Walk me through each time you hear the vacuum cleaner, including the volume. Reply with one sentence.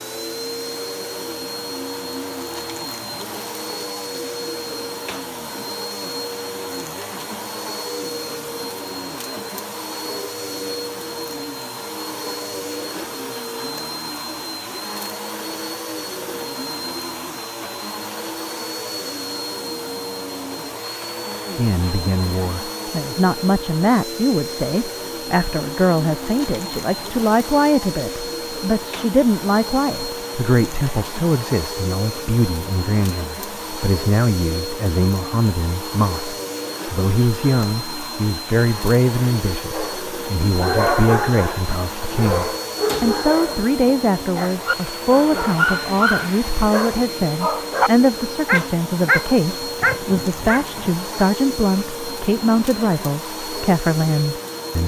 The vacuum cleaner can be heard from 0.0 to 54.8 s, at a steady volume.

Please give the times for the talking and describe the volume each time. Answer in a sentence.
You can hear the talking from 21.6 to 54.8 s, at a steady volume.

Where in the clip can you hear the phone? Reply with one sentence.
The phone can't be heard in this clip.